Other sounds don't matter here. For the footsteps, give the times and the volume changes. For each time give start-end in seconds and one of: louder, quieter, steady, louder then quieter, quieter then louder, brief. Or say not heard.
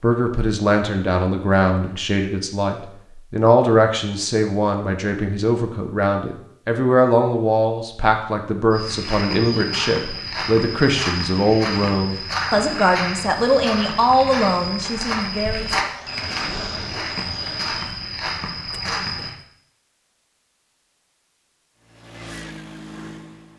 8.7-19.4 steady.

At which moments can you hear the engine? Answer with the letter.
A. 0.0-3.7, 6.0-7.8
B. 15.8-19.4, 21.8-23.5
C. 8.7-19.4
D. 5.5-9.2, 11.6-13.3
B.